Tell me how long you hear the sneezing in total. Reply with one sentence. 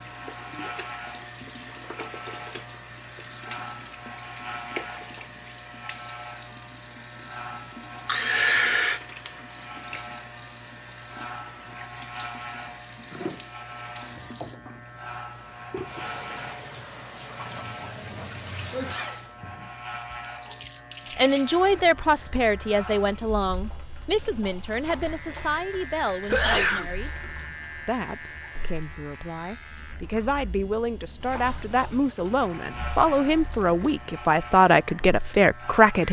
The sneezing can be heard for 2 seconds in total.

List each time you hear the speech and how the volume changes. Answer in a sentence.
You can hear the speech from 21.1 to 27.1 s, getting quieter; and from 27.9 to 36.0 s, getting louder.